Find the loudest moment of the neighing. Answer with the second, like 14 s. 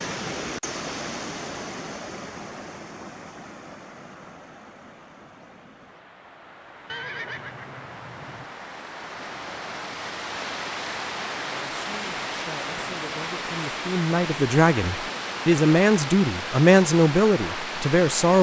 7 s.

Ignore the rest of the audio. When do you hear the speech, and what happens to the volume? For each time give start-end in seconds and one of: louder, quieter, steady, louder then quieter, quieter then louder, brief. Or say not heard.
11.5-18.3 louder.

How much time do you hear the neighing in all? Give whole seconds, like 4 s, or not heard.
2 s.